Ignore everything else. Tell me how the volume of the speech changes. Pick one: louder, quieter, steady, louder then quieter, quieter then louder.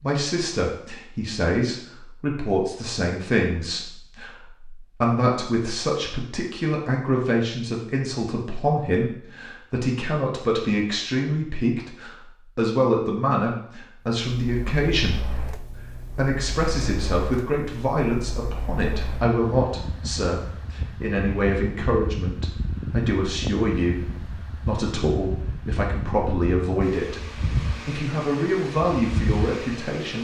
steady.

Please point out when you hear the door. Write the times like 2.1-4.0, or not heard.
not heard.